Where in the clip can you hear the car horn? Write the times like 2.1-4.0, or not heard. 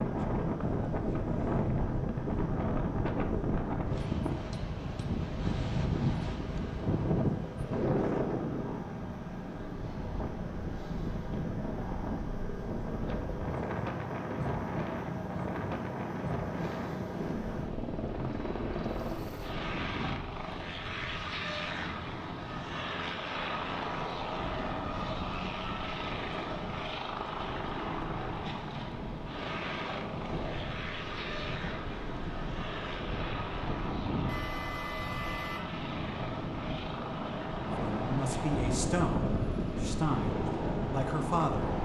34.2-35.7.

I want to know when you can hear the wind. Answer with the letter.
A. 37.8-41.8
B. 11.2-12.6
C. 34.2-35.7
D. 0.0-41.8
D.